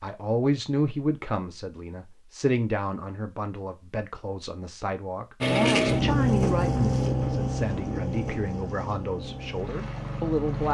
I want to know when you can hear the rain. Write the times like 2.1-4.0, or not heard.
not heard.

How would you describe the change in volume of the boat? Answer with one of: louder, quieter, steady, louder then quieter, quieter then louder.
quieter.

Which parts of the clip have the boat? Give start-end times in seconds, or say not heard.
5.4-10.7.